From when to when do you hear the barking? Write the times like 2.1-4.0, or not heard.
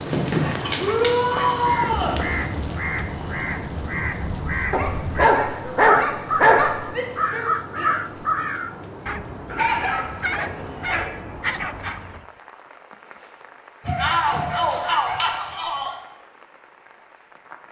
0.1-2.5, 4.7-6.8, 9.5-11.2, 13.8-15.9.